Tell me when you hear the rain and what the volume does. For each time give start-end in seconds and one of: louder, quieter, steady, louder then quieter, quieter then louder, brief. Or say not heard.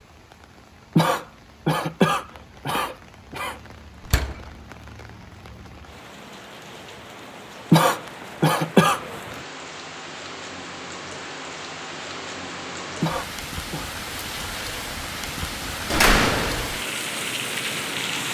0.0-18.2 louder.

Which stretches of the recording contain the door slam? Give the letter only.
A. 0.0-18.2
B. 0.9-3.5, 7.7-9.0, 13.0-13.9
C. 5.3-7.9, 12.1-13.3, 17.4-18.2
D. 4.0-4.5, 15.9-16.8
D.